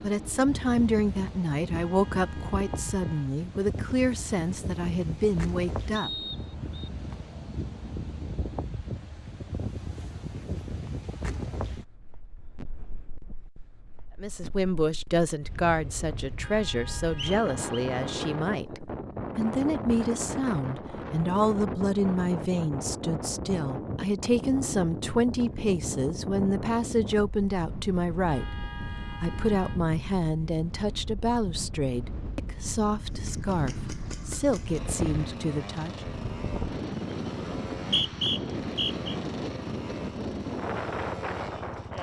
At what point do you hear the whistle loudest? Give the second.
38 s.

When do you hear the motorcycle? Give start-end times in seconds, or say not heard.
33.0-41.9.